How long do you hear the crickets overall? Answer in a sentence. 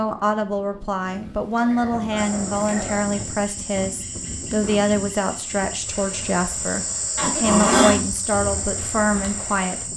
You can hear the crickets for 8 seconds altogether.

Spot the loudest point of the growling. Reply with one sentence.
The volume of the growling peaks at 8 seconds.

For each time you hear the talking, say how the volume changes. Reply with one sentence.
You can hear the talking from 0.0 to 9.9 s, at a steady volume.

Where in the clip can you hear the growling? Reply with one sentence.
You can hear the growling from 1.1 to 3.0 s and from 7.2 to 8.0 s.